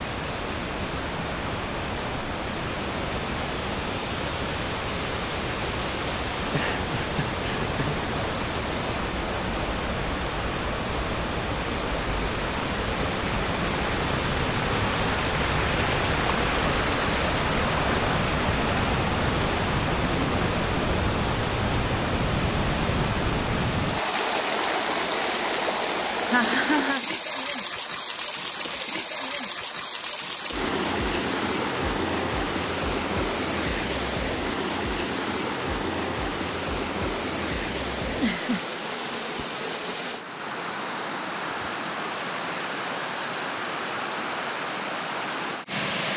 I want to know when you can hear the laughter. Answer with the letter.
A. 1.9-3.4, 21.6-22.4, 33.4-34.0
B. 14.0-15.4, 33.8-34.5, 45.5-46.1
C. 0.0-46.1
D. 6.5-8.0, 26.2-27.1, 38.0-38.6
D.